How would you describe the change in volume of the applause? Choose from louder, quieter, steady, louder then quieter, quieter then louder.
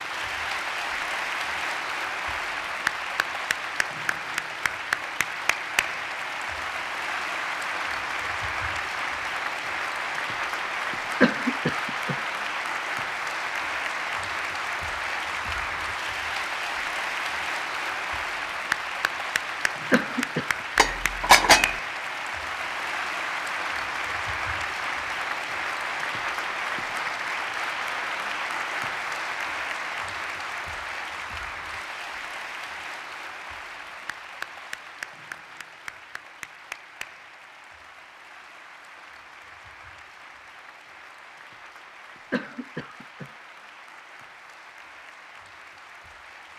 quieter.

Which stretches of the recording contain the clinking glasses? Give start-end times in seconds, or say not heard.
20.8-21.8.